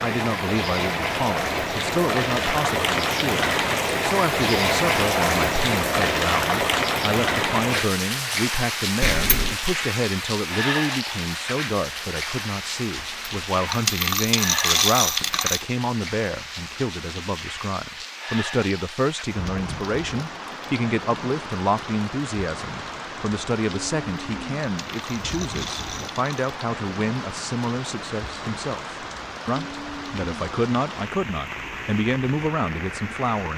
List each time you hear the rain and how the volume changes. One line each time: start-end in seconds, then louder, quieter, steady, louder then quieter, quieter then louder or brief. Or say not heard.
0.0-33.5 quieter.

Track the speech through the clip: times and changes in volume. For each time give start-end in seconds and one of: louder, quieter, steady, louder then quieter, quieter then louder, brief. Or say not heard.
0.0-33.5 steady.